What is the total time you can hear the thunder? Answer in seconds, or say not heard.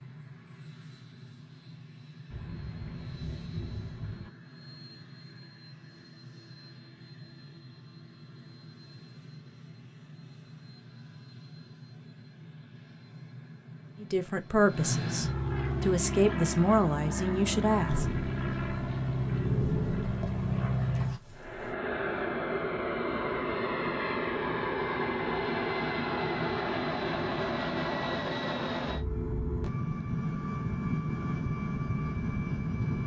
5 s.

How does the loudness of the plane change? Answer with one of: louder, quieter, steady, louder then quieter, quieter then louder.
louder.